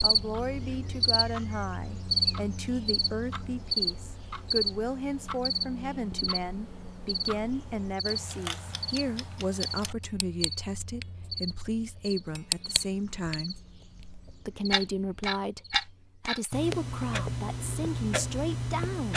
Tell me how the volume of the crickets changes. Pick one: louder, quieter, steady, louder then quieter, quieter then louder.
quieter.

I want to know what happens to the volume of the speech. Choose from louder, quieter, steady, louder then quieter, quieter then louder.
steady.